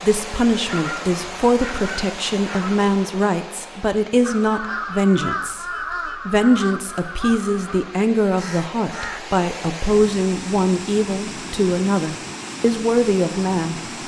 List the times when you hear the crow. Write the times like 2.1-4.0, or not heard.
4.2-9.2.